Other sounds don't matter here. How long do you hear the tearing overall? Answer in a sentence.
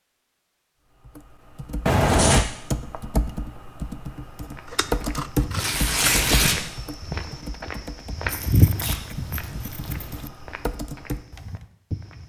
You can hear the tearing for 3 seconds altogether.